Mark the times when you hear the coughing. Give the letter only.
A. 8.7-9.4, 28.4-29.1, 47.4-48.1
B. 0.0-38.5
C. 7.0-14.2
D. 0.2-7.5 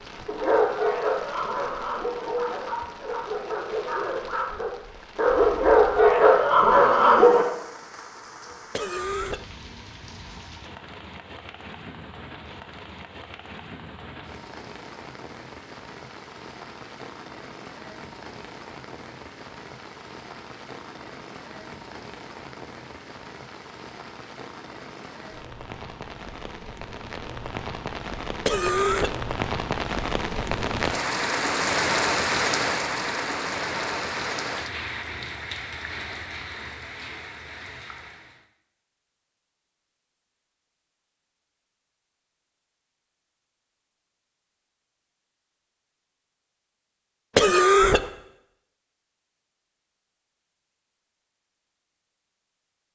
A.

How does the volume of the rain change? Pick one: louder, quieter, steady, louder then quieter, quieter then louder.
louder.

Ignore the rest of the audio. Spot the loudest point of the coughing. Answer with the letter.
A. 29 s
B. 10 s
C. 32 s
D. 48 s
D.